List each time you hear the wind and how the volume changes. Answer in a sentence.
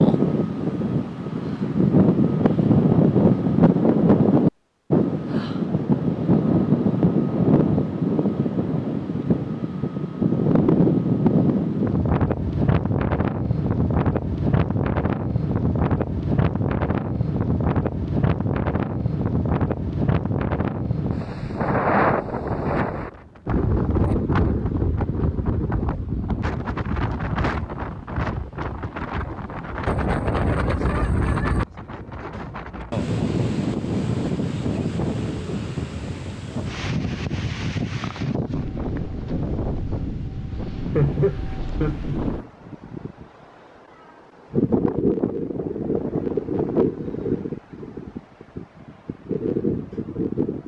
You can hear the wind from 0.0 to 50.6 s, getting quieter.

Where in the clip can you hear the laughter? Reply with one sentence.
The laughter can be heard from 41.0 to 42.3 s.